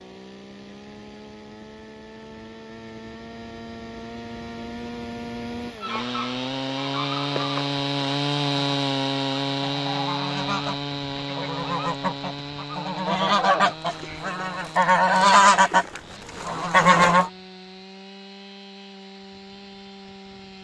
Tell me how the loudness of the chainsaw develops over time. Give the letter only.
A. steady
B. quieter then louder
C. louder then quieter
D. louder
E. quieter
C.